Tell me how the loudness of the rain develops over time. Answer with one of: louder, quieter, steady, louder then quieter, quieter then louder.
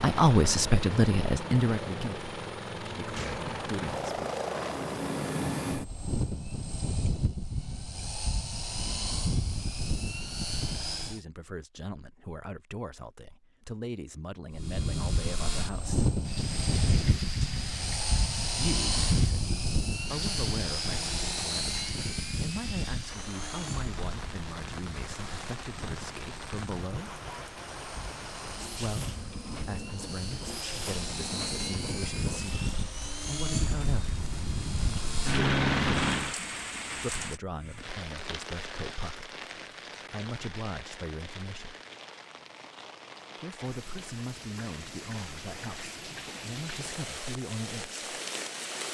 steady.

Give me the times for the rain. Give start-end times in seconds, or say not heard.
16.2-48.8.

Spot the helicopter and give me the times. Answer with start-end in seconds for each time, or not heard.
0.0-11.2, 14.5-36.4.